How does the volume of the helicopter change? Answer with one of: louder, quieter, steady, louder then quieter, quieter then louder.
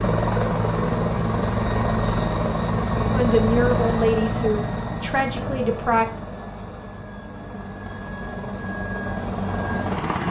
quieter then louder.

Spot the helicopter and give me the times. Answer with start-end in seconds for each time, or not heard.
0.0-10.2.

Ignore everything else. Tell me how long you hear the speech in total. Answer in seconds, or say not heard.
3 s.